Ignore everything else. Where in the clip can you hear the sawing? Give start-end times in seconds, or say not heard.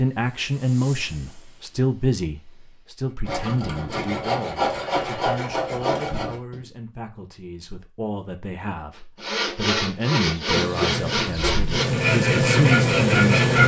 3.2-6.7, 9.2-13.6.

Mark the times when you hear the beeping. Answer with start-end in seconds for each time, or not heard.
not heard.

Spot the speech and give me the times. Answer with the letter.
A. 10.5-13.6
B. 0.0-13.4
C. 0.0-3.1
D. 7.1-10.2
B.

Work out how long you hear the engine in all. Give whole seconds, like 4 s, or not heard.
3 s.